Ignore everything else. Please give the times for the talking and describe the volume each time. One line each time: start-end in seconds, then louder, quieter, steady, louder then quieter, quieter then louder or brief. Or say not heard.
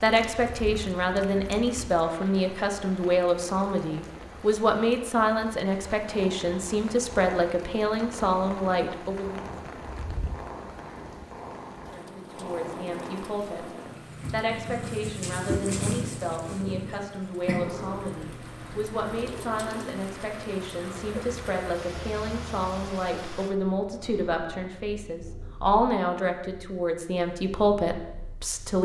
0.0-9.4 steady
11.9-13.7 brief
14.3-28.8 louder.